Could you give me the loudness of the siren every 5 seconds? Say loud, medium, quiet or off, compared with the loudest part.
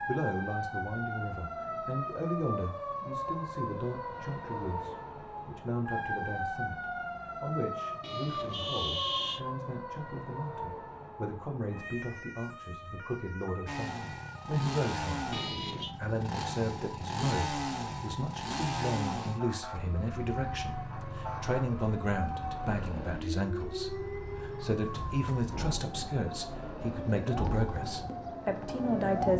loud, loud, medium, medium, loud, loud.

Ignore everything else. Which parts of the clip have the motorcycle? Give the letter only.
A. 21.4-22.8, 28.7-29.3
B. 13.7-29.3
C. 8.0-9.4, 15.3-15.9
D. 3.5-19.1
B.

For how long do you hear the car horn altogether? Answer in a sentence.
You can hear the car horn for 2 seconds altogether.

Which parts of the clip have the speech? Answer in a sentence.
The speech can be heard from 0.1 to 29.3 s.